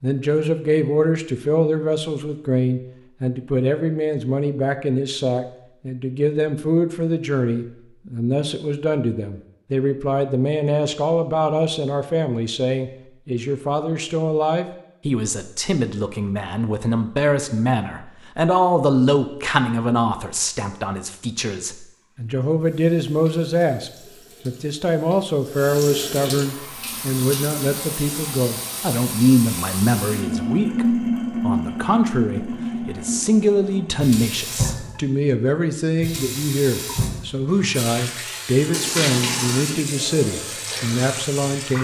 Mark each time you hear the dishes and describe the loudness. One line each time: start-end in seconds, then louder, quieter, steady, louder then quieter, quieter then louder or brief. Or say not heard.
not heard.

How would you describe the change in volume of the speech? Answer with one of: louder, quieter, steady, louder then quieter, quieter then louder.
steady.